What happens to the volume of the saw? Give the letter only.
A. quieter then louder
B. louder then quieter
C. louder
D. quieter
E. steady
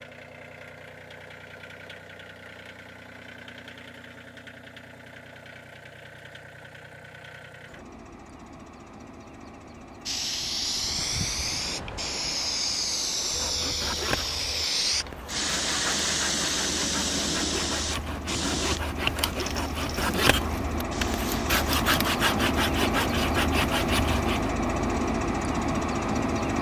C.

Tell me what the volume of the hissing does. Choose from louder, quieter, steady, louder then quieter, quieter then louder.
quieter.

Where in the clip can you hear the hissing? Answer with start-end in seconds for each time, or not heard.
10.1-21.6.